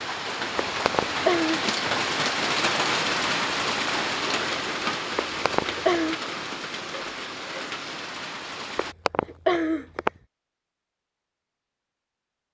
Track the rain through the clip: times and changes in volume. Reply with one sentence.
The rain can be heard from 0.0 to 8.9 s, getting quieter.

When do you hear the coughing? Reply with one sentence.
You can hear the coughing from 0.6 to 1.6 s, from 5.2 to 6.2 s and from 8.8 to 10.1 s.